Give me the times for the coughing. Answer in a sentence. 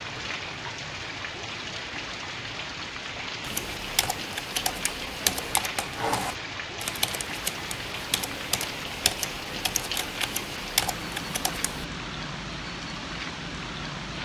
You can't hear the coughing here.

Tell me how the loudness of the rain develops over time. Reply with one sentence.
The volume of the rain stays about the same.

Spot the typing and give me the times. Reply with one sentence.
The typing can be heard from 3.4 to 11.8 s.